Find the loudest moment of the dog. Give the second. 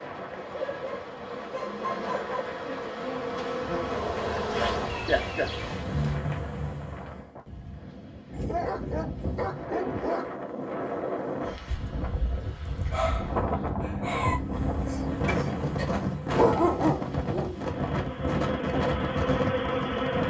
17 s.